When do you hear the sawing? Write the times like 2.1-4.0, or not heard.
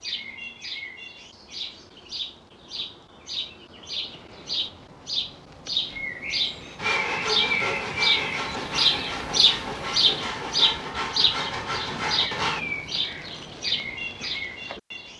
6.8-12.7.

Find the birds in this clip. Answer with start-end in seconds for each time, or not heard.
0.0-15.1.